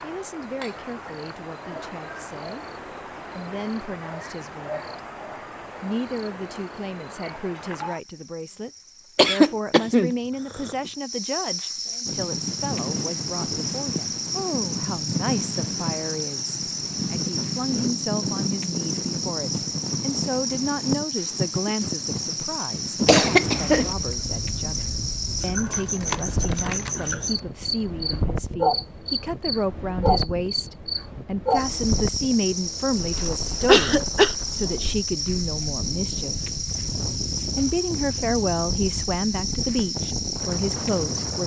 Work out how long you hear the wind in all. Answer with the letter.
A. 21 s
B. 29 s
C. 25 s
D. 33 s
B.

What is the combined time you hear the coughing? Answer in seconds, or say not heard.
3 s.